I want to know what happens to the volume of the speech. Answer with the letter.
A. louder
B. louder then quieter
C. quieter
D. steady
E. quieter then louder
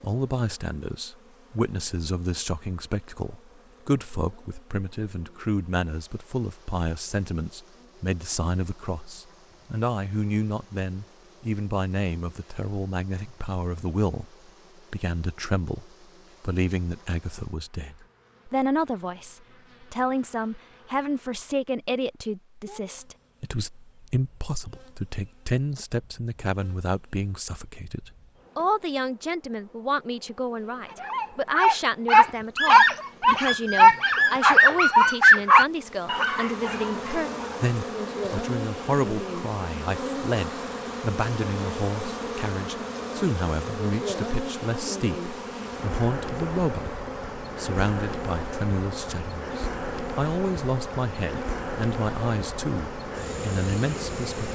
D.